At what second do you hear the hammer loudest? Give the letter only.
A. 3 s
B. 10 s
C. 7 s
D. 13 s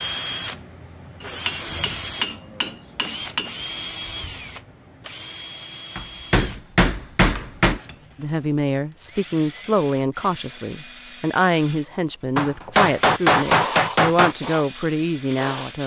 D.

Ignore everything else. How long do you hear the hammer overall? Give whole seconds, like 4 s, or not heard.
6 s.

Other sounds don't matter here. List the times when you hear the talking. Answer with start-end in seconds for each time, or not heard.
8.2-15.8.